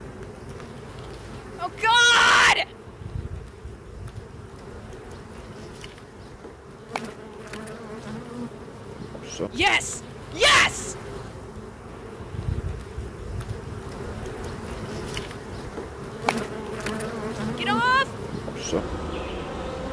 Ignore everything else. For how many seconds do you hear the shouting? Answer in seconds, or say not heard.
3 s.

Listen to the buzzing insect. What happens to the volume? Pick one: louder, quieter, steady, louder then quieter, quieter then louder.
louder.